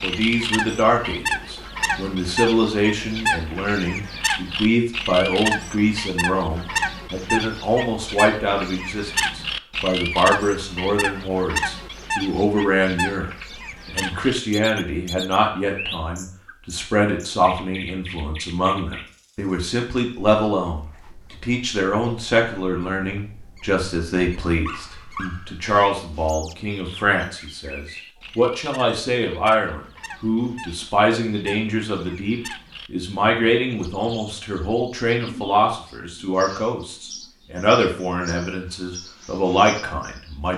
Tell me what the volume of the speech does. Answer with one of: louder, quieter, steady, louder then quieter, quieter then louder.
steady.